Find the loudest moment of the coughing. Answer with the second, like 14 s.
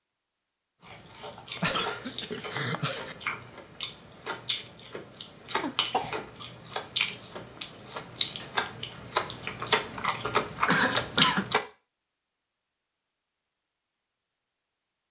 11 s.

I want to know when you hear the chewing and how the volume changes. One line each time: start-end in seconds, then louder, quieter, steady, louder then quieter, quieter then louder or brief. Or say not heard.
0.8-11.6 louder.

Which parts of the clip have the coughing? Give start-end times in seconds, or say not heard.
1.6-3.1, 5.6-6.2, 10.7-11.5.